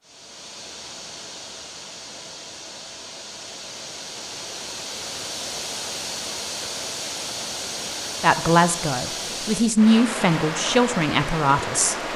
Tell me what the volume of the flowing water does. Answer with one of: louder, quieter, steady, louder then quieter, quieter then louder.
louder.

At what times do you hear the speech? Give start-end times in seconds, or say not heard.
8.2-11.9.